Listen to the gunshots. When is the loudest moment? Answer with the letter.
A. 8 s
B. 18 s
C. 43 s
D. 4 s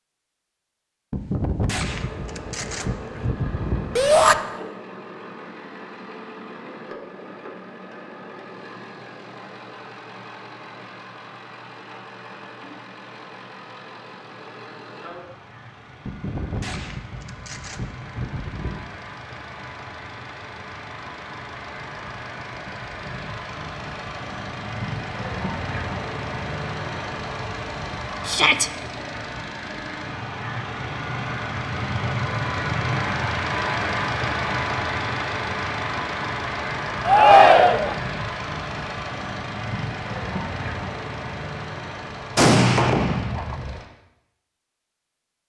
C.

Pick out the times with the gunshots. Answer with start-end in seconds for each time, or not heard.
1.1-4.4, 16.1-18.9, 42.4-43.8.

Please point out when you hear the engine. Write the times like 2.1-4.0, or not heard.
1.8-43.9.